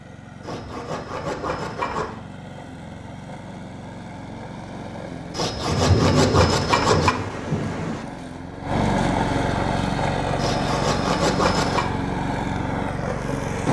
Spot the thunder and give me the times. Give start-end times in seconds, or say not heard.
5.7-8.1.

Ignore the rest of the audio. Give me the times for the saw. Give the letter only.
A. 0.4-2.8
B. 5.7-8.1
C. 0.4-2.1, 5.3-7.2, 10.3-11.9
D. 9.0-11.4
C.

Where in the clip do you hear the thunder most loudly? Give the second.
6 s.